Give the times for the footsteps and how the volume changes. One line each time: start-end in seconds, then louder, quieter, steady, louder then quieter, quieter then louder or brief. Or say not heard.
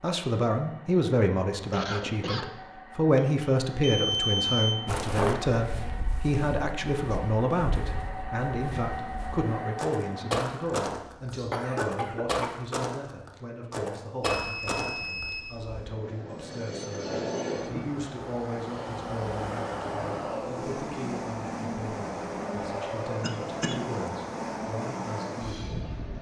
4.8-15.3 quieter then louder.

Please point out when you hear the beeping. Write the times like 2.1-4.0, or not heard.
3.1-4.8, 14.2-15.9.